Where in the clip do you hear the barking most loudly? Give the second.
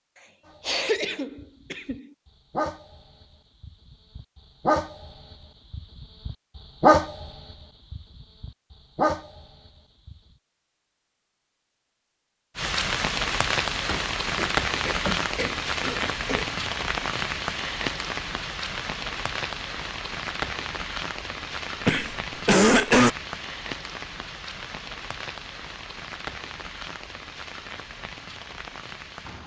7 s.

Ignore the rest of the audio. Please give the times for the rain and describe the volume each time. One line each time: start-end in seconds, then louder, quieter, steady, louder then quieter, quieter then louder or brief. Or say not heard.
12.6-29.4 quieter.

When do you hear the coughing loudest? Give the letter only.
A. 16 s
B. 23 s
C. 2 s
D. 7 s
B.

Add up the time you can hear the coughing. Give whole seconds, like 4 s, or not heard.
5 s.